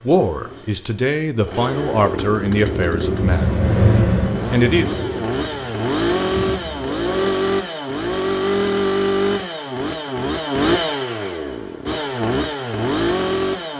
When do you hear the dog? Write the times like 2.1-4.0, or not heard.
not heard.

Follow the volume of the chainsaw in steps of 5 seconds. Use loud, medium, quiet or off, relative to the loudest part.
medium, loud, loud.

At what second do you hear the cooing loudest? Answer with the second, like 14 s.
4 s.